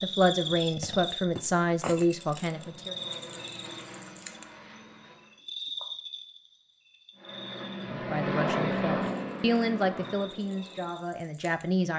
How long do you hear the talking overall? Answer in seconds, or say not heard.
7 s.